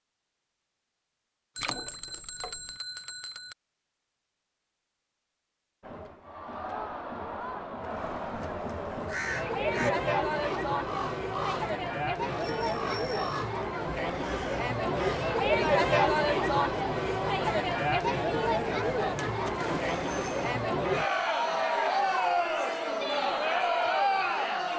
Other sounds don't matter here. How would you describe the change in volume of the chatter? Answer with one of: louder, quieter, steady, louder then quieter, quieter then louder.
louder.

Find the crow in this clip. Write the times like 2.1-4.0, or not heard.
8.8-15.3.